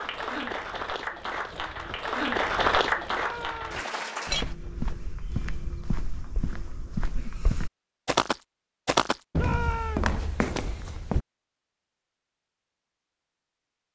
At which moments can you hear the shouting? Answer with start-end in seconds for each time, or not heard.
3.1-3.9, 9.3-10.2.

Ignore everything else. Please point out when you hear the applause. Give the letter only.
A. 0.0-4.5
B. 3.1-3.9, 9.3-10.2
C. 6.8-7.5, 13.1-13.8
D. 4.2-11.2
A.